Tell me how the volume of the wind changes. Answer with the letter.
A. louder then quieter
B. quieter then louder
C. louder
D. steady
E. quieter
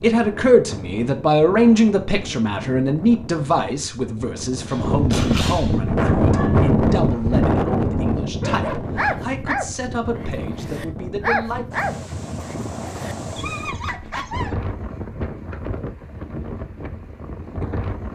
A.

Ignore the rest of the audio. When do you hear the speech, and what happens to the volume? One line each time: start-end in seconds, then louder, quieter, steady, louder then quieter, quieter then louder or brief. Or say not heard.
0.0-11.7 quieter.